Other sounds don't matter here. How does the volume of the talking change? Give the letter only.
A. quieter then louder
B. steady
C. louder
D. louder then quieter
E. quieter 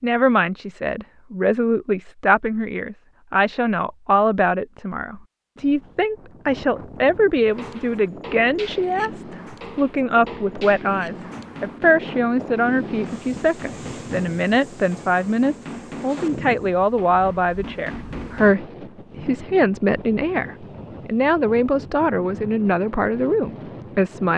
B.